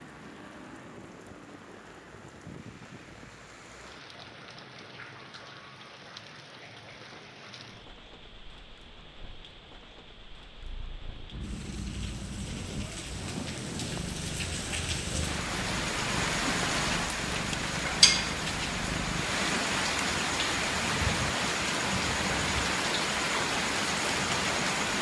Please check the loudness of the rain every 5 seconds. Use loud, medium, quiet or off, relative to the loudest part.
quiet, quiet, quiet, loud, loud.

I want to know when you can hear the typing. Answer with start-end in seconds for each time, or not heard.
not heard.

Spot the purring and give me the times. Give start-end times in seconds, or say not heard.
10.6-19.3.